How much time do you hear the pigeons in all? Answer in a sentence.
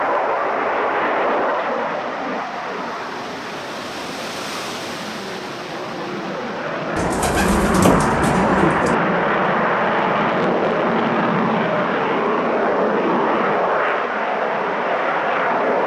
The pigeons can be heard for 2 seconds in total.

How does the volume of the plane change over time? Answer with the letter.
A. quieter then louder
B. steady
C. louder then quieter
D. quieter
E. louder
A.